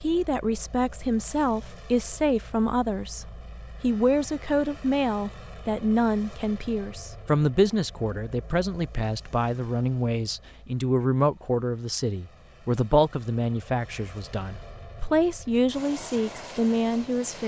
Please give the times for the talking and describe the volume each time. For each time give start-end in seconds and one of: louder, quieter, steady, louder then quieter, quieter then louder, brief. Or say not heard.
0.0-17.4 steady.